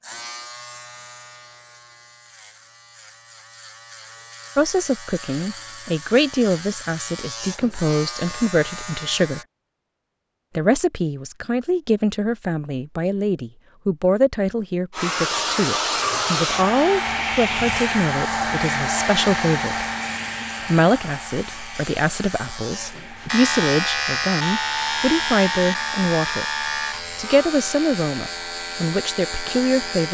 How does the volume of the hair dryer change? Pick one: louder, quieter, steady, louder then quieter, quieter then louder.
quieter.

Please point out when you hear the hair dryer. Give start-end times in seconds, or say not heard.
14.9-30.0.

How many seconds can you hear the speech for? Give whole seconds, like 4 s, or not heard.
23 s.